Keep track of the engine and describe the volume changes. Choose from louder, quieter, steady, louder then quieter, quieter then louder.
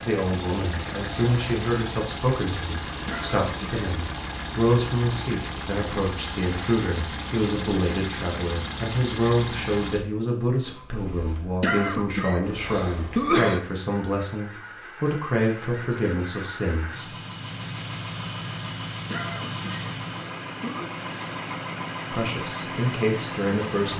quieter then louder.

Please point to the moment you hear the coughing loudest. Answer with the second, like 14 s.
13 s.